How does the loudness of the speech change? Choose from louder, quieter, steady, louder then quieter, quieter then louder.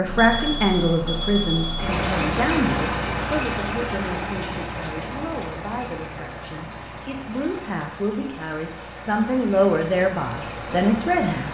quieter then louder.